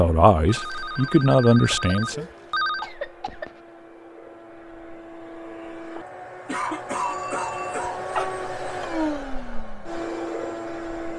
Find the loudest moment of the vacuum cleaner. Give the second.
9 s.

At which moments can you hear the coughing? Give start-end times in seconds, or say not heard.
1.5-3.5, 6.5-8.1.